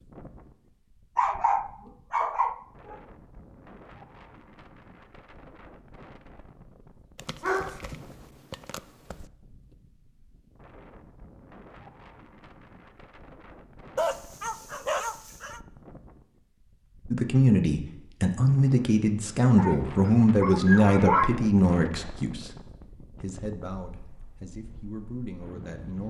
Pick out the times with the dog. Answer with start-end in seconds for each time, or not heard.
1.1-3.0, 7.2-9.2, 13.9-15.6, 19.6-21.4.